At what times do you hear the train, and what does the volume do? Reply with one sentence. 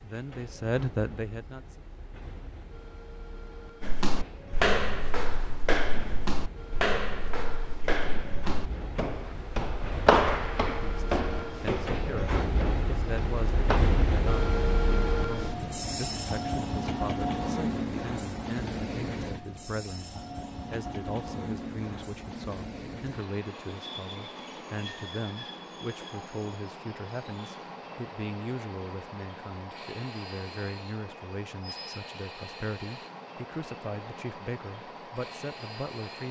You can hear the train from 0.0 to 36.2 s, getting louder then quieter.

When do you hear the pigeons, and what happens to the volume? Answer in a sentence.
The pigeons can't be heard in this clip.